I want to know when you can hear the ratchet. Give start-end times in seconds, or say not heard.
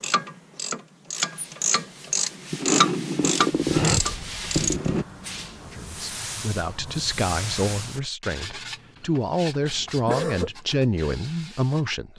0.0-5.0.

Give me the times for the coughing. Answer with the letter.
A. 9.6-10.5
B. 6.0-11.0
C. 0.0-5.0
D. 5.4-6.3
A.